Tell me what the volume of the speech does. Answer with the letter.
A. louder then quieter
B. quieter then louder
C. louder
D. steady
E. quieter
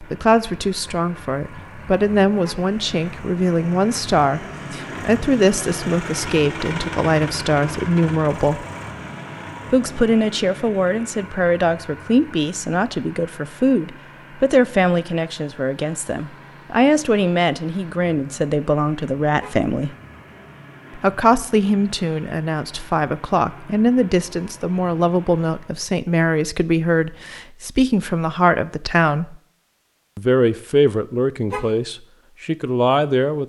D.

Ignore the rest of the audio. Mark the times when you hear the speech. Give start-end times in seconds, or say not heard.
0.0-8.7, 9.7-19.9, 20.9-29.4, 30.1-33.4.